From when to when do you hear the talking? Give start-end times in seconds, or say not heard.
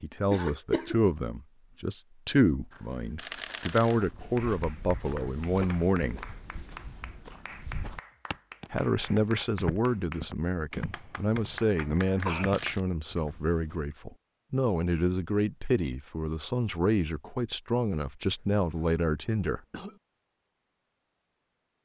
0.0-6.2, 8.7-19.6.